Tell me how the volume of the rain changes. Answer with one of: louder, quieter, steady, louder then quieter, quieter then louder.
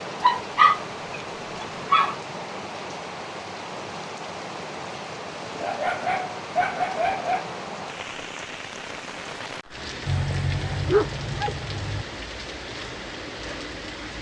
steady.